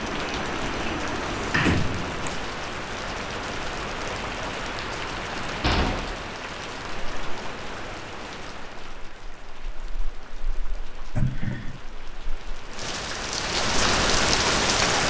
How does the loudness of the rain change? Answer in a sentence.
The loudness of the rain goes down, then up.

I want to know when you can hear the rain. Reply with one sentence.
You can hear the rain from 0.0 to 15.0 s.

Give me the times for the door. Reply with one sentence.
The door can be heard from 0.0 to 2.4 s, from 5.6 to 6.2 s and from 11.2 to 11.8 s.